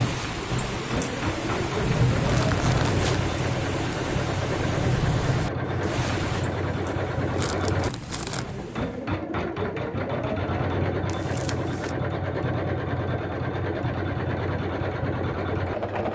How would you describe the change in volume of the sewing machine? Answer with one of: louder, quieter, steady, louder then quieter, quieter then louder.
steady.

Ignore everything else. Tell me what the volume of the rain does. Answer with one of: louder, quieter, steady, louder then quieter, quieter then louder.
quieter.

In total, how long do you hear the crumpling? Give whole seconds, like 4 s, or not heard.
3 s.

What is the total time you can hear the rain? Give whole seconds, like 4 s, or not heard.
9 s.